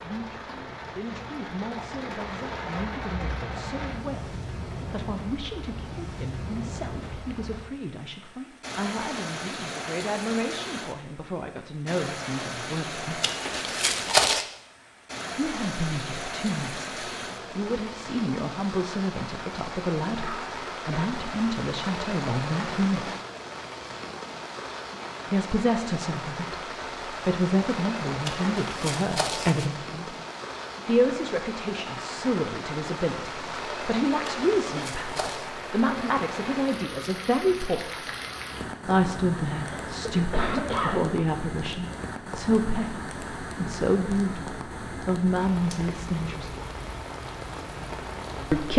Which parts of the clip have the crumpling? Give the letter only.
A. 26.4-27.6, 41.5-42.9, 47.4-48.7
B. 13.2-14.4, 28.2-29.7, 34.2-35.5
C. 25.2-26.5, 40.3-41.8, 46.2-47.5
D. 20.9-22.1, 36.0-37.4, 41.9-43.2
B.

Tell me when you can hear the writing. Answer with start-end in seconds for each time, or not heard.
not heard.